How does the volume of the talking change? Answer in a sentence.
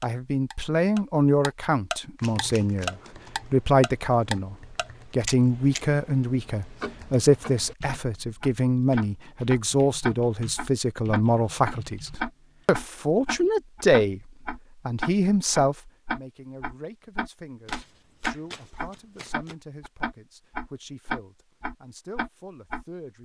The volume of the talking goes down.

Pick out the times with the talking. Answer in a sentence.
You can hear the talking from 0.0 to 23.1 s.